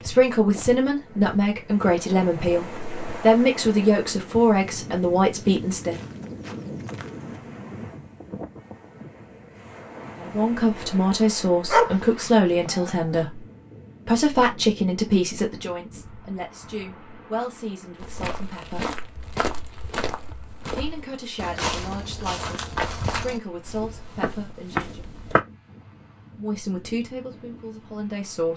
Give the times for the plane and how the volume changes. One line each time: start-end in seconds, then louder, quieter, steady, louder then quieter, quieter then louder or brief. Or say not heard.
not heard.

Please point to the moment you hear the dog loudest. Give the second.
12 s.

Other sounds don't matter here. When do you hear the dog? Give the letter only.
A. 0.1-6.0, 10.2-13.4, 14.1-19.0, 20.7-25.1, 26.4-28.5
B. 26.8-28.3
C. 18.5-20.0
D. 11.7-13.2
D.